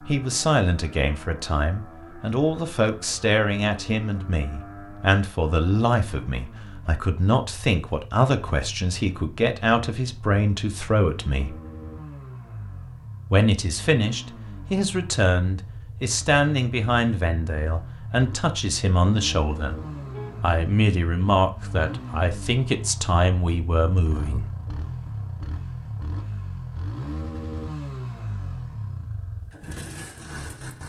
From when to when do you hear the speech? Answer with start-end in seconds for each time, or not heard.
0.1-11.6, 13.3-19.8, 20.4-24.5.